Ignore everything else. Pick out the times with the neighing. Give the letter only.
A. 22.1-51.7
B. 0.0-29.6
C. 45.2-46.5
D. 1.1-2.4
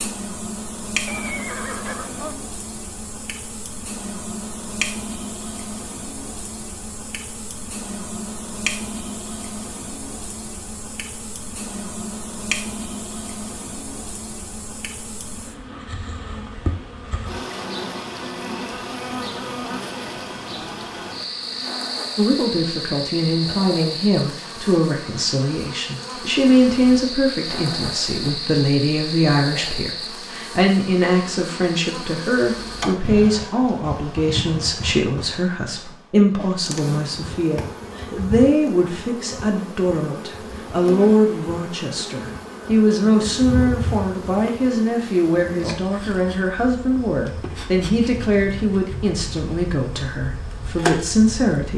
D.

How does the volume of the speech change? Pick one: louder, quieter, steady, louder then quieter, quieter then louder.
steady.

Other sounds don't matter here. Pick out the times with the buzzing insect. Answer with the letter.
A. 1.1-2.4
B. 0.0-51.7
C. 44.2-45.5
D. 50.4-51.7
B.